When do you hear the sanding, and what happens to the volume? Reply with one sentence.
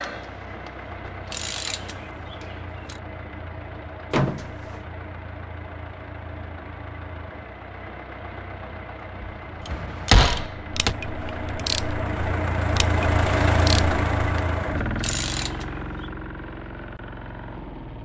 The sanding can't be heard in this clip.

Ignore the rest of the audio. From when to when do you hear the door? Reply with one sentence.
The door can be heard from 4.1 to 4.8 s.